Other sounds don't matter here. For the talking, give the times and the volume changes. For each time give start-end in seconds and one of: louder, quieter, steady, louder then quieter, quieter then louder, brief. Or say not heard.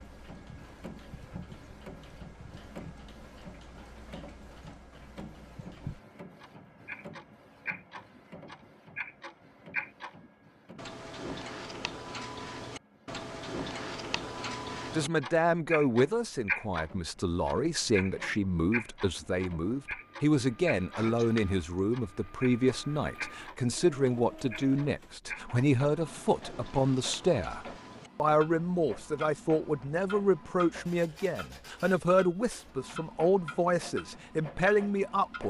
14.9-35.4 steady.